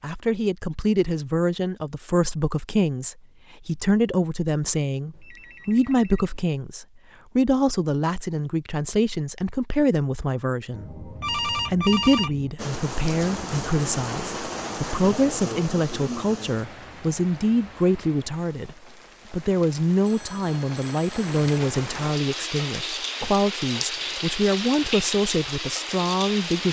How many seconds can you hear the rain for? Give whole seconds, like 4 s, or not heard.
14 s.